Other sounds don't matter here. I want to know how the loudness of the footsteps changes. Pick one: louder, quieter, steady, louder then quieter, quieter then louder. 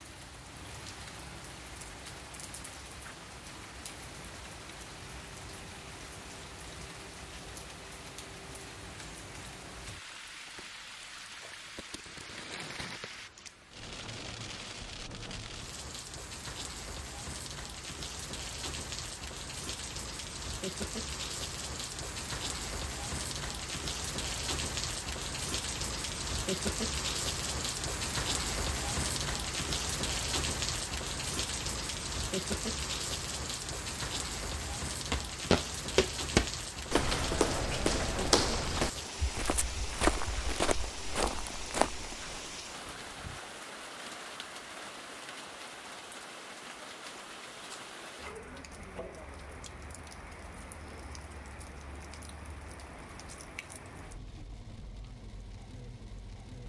quieter.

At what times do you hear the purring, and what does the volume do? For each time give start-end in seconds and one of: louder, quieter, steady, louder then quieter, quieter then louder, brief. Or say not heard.
not heard.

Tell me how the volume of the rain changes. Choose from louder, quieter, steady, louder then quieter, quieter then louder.
louder then quieter.